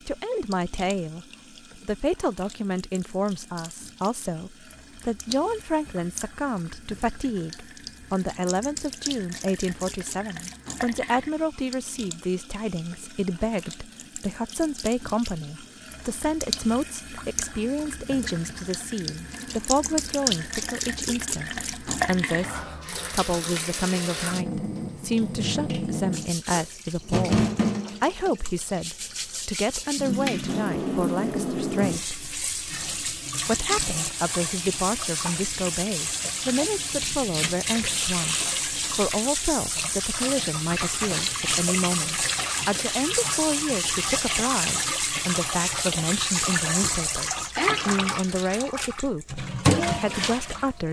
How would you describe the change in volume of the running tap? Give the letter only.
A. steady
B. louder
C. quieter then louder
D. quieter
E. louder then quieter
B.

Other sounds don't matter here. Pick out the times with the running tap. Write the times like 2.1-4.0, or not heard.
0.0-50.7.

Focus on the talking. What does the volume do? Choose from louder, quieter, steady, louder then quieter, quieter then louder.
steady.